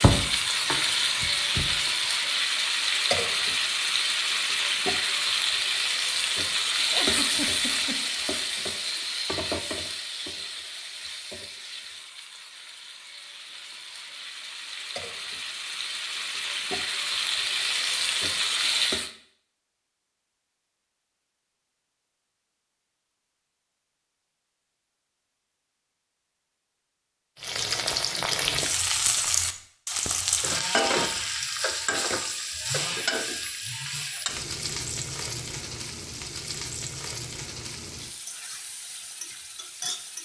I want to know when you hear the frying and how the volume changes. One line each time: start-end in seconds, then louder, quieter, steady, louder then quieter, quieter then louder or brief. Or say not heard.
0.0-19.1 quieter then louder
27.4-40.1 quieter.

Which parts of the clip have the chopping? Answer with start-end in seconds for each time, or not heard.
0.0-1.7.